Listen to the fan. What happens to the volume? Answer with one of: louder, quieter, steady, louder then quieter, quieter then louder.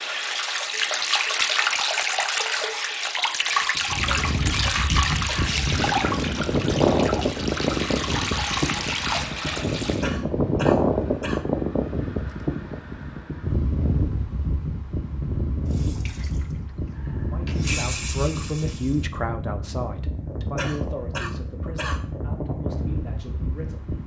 quieter.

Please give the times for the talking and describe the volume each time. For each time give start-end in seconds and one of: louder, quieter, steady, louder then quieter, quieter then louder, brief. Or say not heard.
17.1-23.9 quieter.